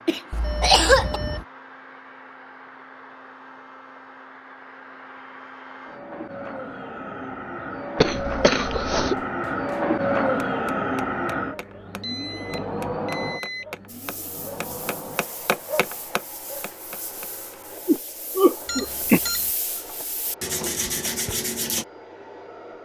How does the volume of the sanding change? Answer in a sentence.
The loudness of the sanding goes up.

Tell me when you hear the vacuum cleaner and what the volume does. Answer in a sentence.
The vacuum cleaner can be heard from 0.0 to 22.8 s, getting louder then quieter.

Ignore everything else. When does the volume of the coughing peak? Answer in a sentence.
The loudest moment of the coughing is at 1 second.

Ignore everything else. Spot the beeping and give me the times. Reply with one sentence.
You can hear the beeping from 0.3 to 1.4 s, from 12.0 to 13.7 s and from 18.6 to 19.5 s.